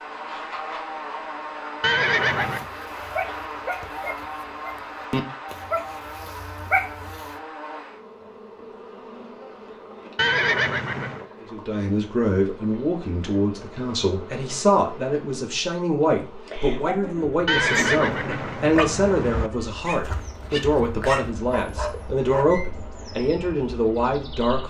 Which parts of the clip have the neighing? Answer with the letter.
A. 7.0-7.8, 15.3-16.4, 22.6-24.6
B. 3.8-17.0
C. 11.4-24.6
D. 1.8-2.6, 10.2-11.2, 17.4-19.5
D.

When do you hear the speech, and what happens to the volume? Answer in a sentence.
The speech can be heard from 11.4 to 24.6 s, at a steady volume.